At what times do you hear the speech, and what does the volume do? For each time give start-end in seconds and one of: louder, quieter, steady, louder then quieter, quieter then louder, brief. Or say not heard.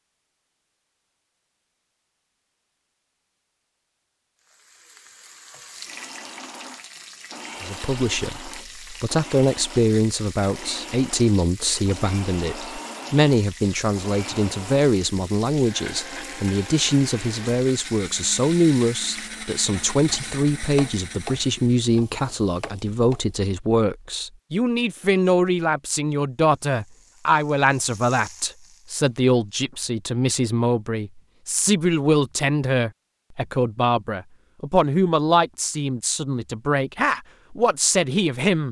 7.6-38.6 steady.